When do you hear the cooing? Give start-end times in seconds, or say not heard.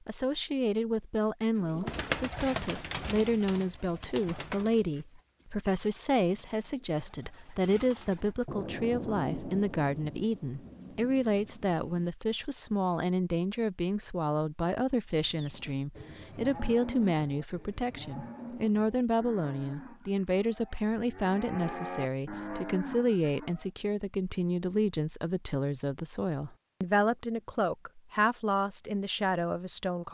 1.6-8.4.